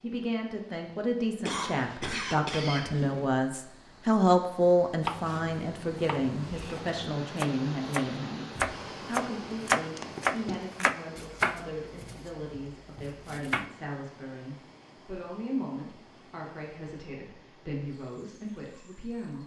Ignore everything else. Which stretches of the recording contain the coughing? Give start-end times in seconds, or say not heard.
1.4-3.2, 9.9-10.7.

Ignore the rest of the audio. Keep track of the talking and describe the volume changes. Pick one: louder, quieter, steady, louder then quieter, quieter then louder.
quieter.